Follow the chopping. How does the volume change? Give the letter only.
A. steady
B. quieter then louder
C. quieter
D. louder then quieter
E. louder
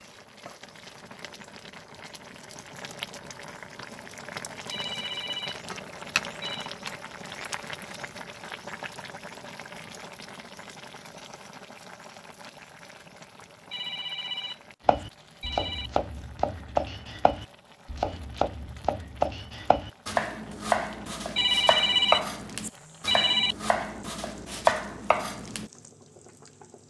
A.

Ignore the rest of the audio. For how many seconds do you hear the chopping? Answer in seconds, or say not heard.
11 s.